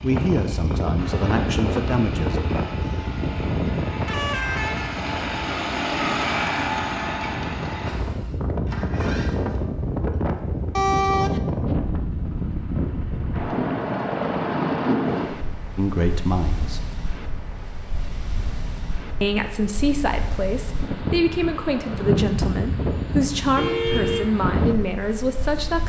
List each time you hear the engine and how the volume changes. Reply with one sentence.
The engine can be heard from 0.0 to 9.7 s, getting louder then quieter.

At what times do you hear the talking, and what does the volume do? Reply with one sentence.
You can hear the talking briefly from 0.0 to 2.4 s; briefly from 15.8 to 16.9 s; and from 19.2 to 25.8 s, at a steady volume.